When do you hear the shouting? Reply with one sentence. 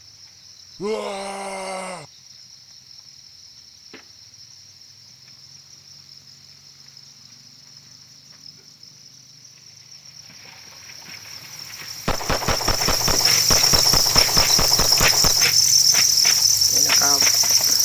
The shouting can be heard from 0.8 to 2.0 s.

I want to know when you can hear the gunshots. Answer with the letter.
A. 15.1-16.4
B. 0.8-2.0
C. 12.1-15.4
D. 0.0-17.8
C.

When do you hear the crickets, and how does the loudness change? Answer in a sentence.
The crickets can be heard from 0.0 to 17.8 s, getting louder.